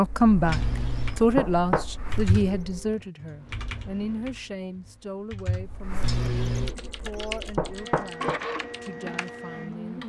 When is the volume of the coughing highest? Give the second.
6 s.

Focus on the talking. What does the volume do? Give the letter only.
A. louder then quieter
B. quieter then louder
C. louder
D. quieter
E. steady
D.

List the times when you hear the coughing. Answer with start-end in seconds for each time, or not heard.
0.5-1.1, 6.0-6.7.